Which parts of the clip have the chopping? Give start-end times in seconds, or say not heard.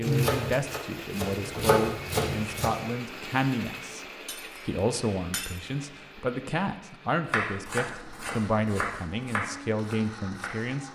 0.0-2.8, 7.3-10.8.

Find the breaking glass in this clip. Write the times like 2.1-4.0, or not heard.
4.2-5.6.